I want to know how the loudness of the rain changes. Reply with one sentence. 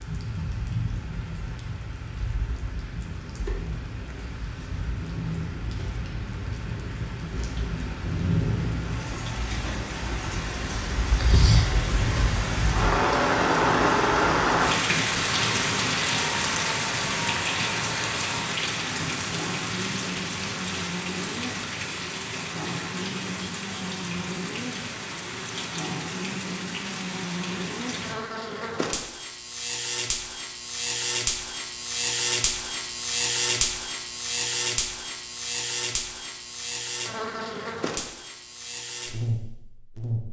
The loudness of the rain goes up, then down.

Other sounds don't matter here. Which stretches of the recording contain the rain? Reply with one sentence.
You can hear the rain from 0.0 to 28.1 s.